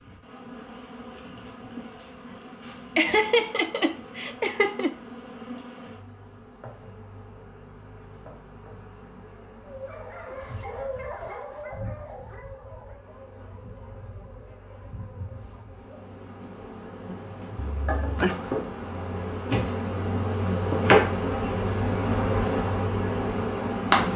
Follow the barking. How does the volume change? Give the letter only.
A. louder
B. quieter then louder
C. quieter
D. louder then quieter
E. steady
C.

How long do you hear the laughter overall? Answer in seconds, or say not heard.
3 s.